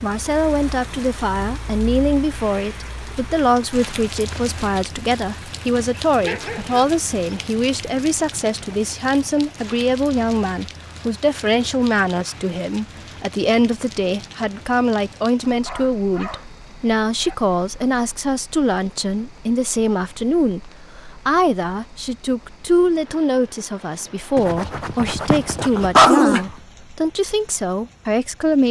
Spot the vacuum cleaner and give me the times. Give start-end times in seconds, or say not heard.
not heard.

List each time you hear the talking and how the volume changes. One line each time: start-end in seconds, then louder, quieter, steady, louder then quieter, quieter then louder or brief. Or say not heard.
0.0-28.6 steady.